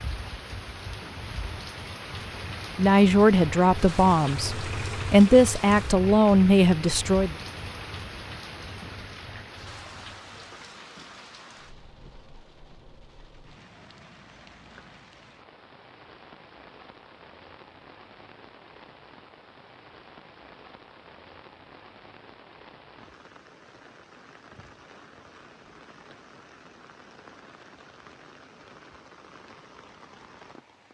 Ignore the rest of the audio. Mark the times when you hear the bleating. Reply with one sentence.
The bleating can't be heard in this clip.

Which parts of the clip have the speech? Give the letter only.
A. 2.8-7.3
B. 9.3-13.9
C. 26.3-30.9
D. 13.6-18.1
A.